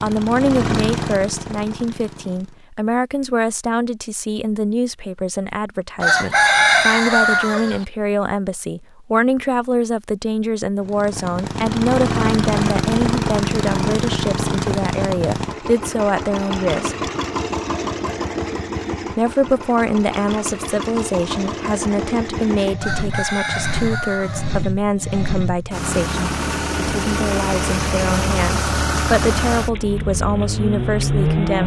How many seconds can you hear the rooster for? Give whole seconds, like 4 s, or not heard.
4 s.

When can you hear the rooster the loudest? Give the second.
7 s.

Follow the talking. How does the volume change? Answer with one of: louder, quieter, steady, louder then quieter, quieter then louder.
steady.